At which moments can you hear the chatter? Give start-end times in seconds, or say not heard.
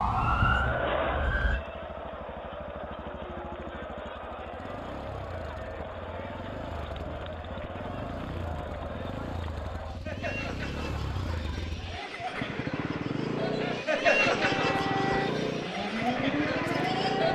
0.1-17.3.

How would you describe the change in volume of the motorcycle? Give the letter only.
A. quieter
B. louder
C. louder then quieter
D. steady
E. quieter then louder
B.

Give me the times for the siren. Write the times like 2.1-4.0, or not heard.
0.0-1.6, 14.4-17.3.